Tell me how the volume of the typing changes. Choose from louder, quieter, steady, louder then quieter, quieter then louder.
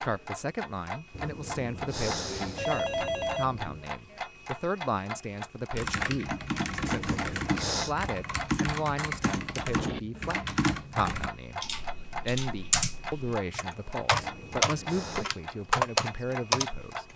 louder.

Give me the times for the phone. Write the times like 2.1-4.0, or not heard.
1.1-3.8, 6.8-8.0, 14.1-15.3.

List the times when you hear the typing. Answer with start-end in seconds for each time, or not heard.
5.8-16.7.